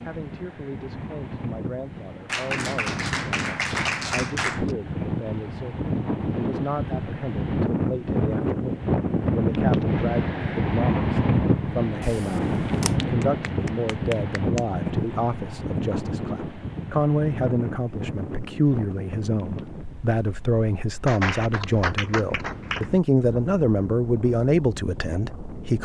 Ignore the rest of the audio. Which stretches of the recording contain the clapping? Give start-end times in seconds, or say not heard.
2.2-4.8, 13.0-14.6, 21.1-22.9.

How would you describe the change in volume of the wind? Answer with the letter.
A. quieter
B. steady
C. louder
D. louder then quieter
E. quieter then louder
D.